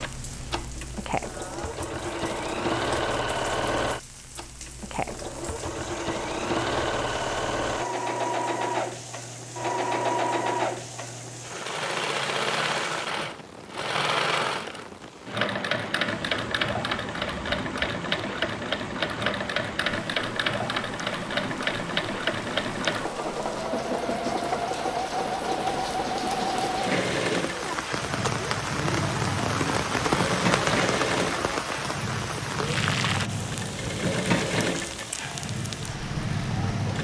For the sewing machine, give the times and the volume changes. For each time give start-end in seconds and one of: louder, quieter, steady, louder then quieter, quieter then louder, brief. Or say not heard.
0.0-36.9 steady.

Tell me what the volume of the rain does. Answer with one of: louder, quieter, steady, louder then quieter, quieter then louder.
louder.